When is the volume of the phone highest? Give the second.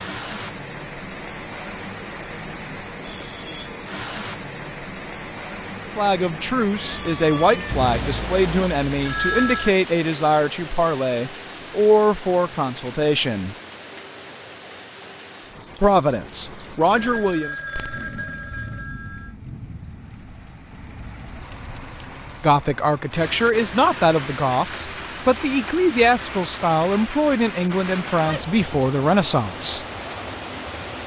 9 s.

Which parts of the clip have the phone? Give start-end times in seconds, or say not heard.
7.7-9.7, 16.9-19.3.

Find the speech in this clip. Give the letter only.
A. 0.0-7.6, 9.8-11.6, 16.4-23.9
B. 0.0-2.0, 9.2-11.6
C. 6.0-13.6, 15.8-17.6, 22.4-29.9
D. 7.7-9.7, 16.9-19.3
C.